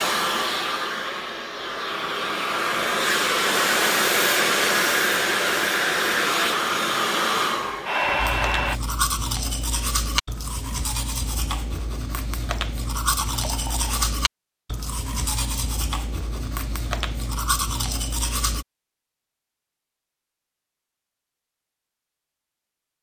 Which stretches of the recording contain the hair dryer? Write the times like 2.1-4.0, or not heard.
0.0-8.8.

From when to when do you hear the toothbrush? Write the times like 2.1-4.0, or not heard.
8.2-18.6.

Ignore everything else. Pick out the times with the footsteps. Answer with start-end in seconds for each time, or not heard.
not heard.